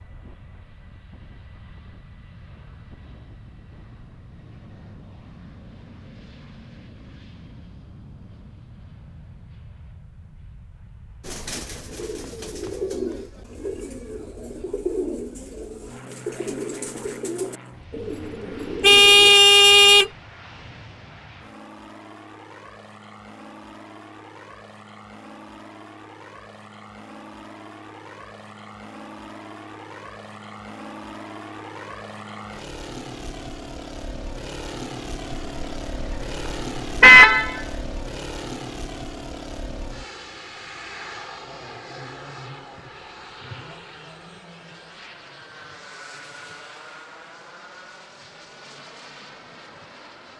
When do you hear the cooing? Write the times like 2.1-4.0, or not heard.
11.2-19.3.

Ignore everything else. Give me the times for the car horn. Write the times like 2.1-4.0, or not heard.
18.8-20.1, 35.5-37.6.